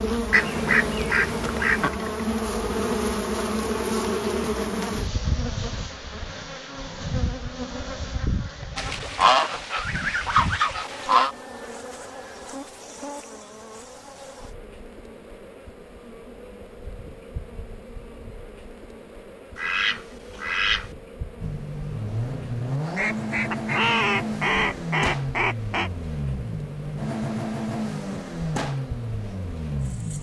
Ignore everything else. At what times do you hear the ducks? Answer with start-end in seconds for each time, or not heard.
0.3-1.9, 8.8-11.3, 19.6-20.9, 22.9-25.9.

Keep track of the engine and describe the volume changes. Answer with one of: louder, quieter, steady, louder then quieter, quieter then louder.
steady.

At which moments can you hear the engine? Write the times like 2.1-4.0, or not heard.
21.4-30.1.